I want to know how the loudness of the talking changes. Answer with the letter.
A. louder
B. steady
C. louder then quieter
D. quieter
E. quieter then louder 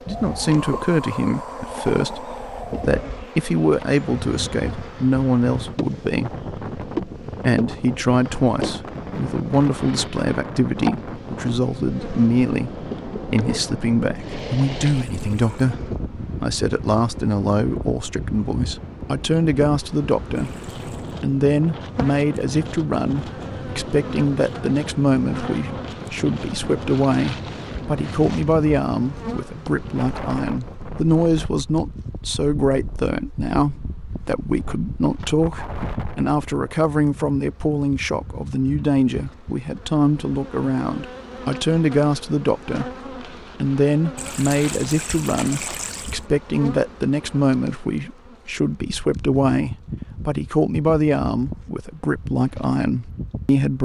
B.